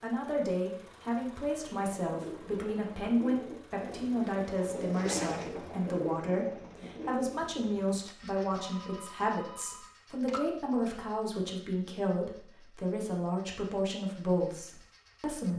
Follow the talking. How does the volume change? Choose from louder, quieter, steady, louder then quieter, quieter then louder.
steady.